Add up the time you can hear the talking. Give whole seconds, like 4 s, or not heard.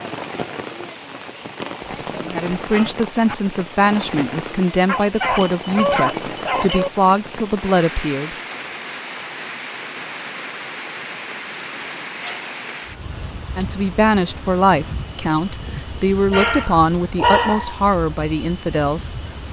12 s.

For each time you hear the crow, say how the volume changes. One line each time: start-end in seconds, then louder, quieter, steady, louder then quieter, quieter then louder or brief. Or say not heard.
not heard.